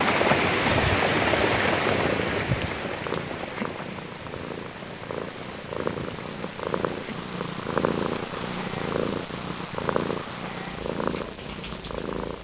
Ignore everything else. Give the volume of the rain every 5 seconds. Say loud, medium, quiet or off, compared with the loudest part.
loud, quiet, quiet.